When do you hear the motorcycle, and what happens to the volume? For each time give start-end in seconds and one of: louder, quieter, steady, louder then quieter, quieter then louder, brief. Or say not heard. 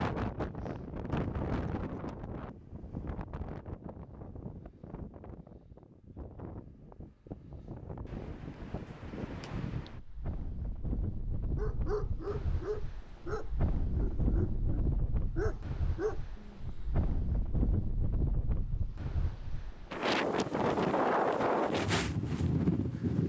not heard.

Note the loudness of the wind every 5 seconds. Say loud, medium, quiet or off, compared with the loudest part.
medium, quiet, medium, medium, loud.